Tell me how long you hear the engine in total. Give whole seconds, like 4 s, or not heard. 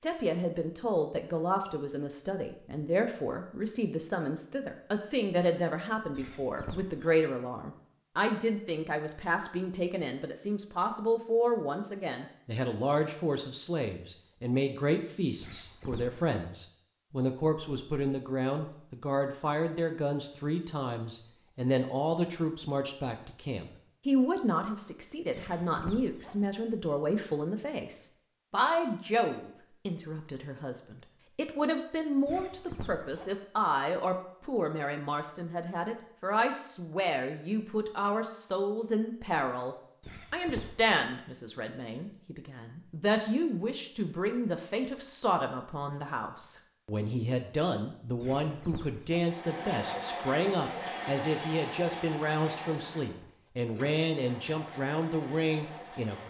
7 s.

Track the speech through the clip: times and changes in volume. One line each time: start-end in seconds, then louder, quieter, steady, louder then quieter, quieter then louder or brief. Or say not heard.
0.0-56.2 steady.